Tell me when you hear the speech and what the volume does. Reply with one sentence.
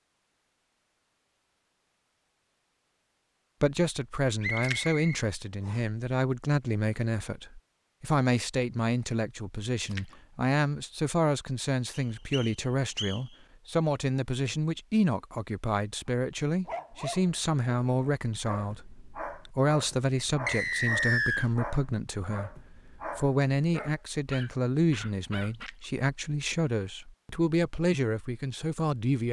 The speech can be heard from 3.6 to 29.2 s, at a steady volume.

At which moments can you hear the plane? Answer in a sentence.
You can't hear the plane here.